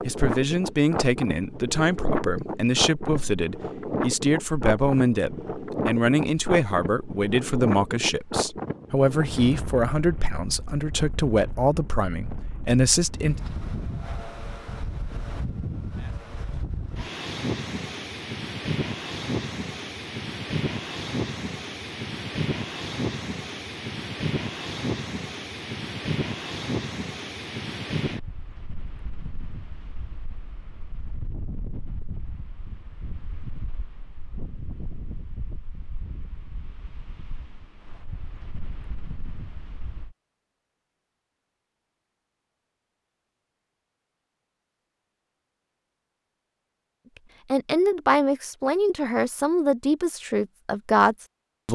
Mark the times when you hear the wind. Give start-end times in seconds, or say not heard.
0.0-40.1.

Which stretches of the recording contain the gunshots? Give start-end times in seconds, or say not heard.
not heard.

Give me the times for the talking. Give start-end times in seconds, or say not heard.
0.0-13.4, 47.5-51.7.